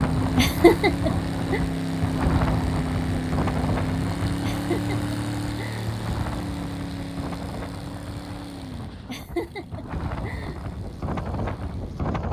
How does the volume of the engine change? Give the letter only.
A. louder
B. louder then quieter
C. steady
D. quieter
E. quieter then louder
D.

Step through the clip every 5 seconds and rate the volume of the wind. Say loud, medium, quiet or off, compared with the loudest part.
loud, medium, loud.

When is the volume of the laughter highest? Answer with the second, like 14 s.
1 s.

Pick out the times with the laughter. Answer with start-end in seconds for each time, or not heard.
0.3-1.6, 4.4-6.0, 9.1-10.6.